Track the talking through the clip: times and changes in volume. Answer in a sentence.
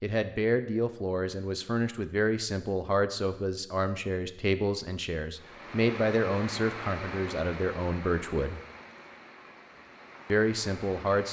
You can hear the talking from 0.0 to 8.6 s, at a steady volume; and briefly from 10.2 to 11.2 s.